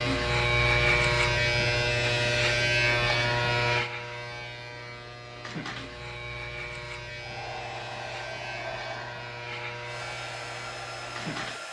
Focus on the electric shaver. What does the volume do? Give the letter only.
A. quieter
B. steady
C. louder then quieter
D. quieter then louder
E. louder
A.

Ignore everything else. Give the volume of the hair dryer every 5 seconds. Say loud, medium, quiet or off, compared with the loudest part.
off, loud, loud.